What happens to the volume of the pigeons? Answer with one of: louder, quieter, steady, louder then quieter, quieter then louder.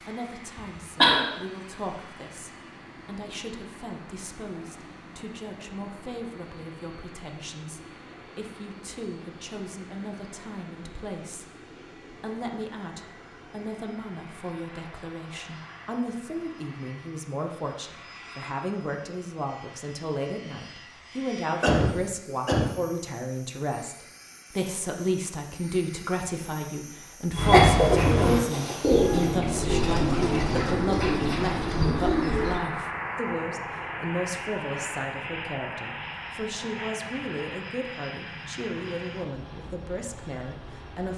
quieter.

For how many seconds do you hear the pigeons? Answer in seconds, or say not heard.
5 s.